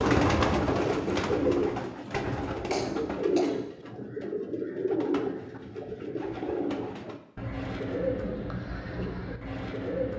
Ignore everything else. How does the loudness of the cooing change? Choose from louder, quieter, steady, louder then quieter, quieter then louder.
quieter.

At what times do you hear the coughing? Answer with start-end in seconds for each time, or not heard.
2.7-3.5.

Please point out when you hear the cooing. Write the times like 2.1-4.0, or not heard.
0.0-10.1.